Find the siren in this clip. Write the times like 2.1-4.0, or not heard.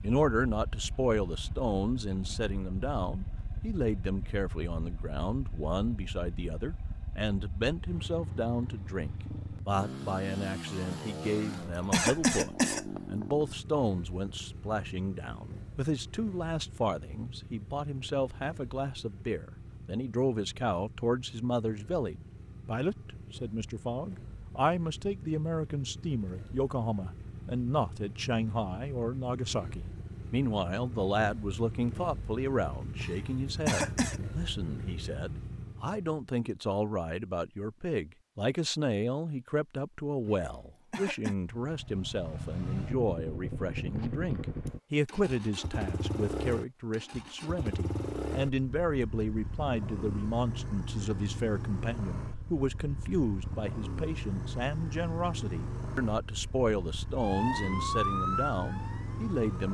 57.1-59.6.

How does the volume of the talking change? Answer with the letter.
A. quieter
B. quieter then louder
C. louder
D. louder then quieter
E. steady
E.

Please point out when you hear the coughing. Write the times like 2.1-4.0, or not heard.
11.2-13.0, 33.0-34.2, 40.2-41.4.